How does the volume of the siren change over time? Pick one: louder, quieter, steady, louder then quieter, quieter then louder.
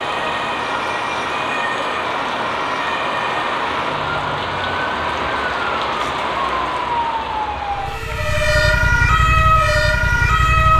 louder.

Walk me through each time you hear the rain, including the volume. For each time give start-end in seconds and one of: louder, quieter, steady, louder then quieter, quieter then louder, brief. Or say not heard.
0.0-10.7 quieter.